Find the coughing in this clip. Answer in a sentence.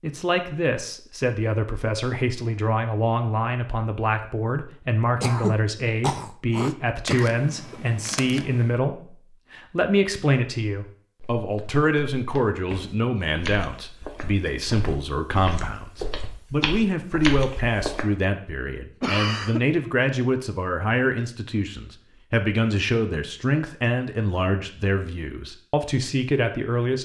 The coughing can be heard from 5.2 to 7.8 s and from 19.0 to 19.6 s.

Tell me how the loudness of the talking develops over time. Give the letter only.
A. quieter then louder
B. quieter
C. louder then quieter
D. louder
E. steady
E.